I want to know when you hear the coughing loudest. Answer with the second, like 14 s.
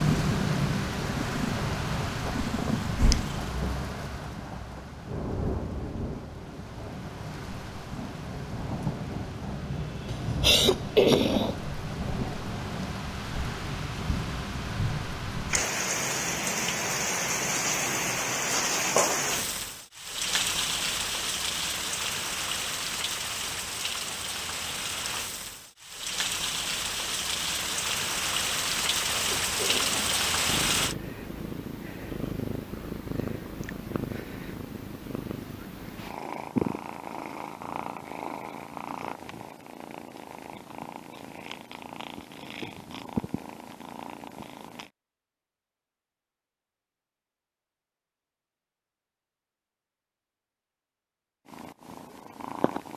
11 s.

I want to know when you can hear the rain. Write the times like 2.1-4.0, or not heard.
0.0-30.9.